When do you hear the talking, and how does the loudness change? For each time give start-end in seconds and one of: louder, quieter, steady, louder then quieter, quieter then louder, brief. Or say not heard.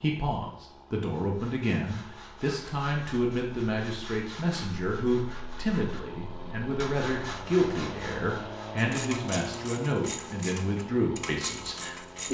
0.0-12.2 steady.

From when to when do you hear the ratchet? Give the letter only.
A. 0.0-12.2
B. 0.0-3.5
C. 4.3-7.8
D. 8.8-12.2
D.